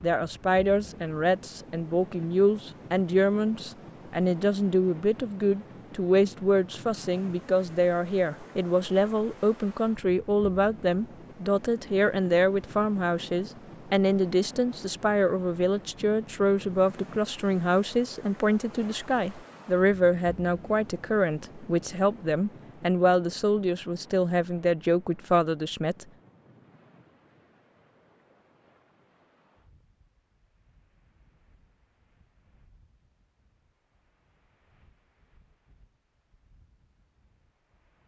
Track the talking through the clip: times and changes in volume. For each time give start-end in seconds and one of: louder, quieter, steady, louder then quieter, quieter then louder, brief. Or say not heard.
0.0-26.1 steady.